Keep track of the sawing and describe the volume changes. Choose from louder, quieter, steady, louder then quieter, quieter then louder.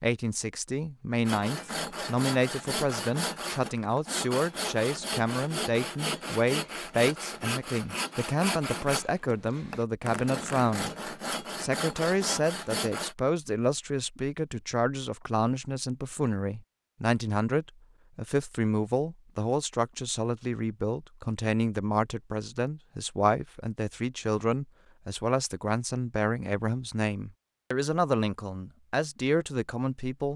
steady.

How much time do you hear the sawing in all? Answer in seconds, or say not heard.
12 s.